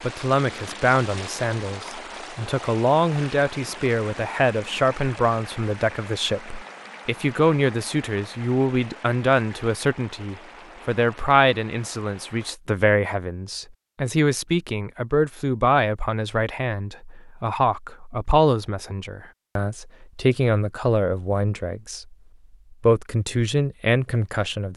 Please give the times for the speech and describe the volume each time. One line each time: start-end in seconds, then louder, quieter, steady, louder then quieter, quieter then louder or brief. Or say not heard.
0.0-24.7 steady.